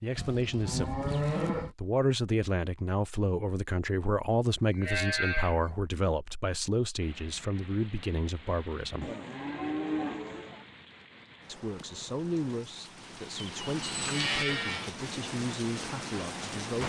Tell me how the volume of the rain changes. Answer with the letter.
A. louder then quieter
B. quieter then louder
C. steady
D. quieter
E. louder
E.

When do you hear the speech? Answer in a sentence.
You can hear the speech from 0.0 to 9.1 s and from 11.4 to 16.8 s.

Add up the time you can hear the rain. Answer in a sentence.
You can hear the rain for 10 seconds altogether.